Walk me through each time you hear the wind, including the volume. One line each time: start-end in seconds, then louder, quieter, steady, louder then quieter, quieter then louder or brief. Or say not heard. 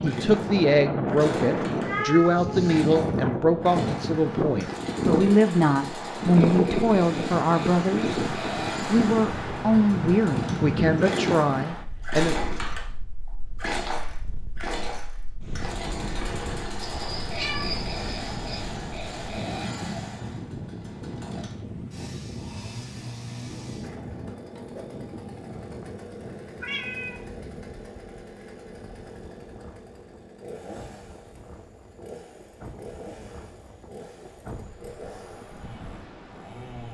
0.0-36.8 quieter.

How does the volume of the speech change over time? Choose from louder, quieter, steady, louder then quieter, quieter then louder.
steady.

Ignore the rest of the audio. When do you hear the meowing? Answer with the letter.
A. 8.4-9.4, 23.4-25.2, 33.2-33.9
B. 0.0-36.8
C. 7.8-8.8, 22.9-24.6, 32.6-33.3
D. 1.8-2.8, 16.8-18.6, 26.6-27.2
D.